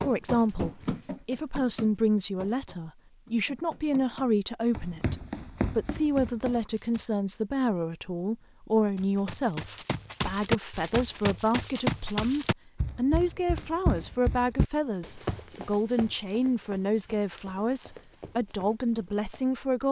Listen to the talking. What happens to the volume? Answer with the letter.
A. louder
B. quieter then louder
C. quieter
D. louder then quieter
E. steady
E.